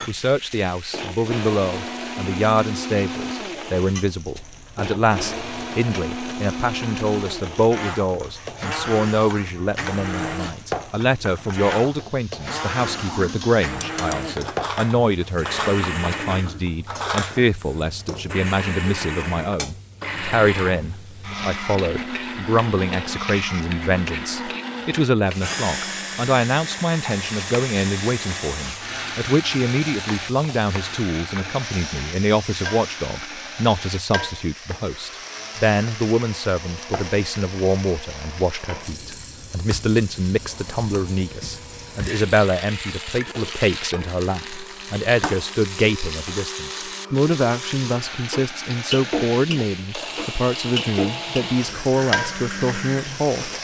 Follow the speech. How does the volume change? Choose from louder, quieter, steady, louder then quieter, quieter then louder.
steady.